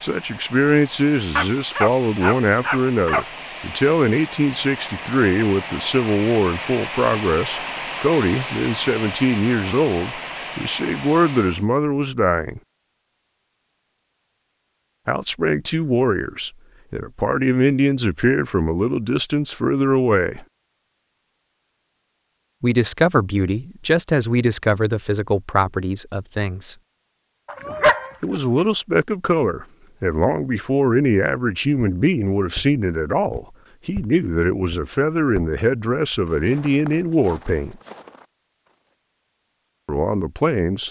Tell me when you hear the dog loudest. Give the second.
28 s.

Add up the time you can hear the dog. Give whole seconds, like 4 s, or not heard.
3 s.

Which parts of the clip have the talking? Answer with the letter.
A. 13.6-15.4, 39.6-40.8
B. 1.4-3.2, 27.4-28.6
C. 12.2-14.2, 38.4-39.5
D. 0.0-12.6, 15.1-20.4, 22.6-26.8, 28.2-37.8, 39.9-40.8
D.